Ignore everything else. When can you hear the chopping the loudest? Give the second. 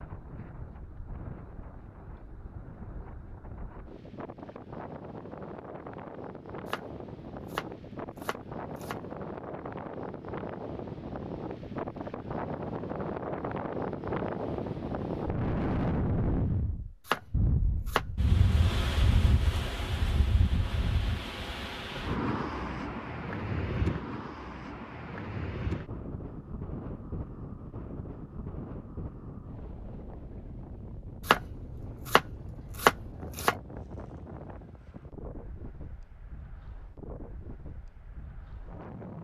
33 s.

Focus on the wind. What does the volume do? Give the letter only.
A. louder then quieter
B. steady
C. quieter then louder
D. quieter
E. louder
A.